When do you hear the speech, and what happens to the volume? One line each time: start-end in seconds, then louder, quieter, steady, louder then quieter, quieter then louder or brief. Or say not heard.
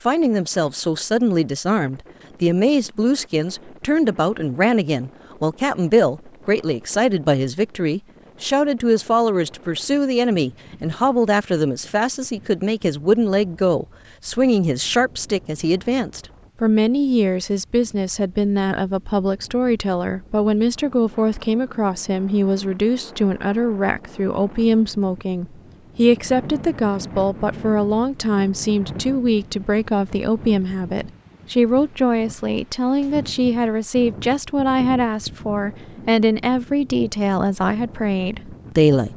0.0-39.1 steady.